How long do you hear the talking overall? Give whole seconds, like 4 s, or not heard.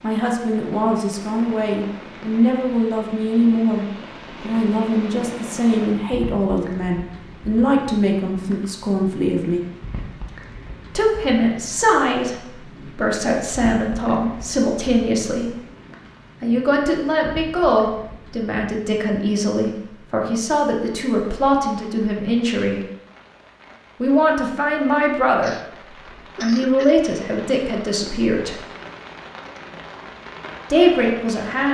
25 s.